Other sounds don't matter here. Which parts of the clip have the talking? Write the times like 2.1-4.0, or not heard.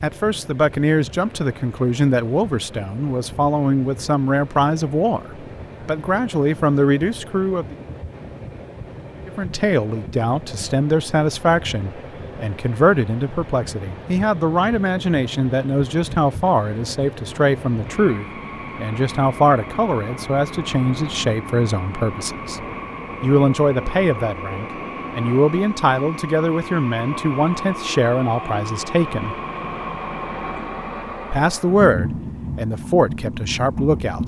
0.0-7.8, 9.2-22.6, 23.2-29.4, 31.3-34.2.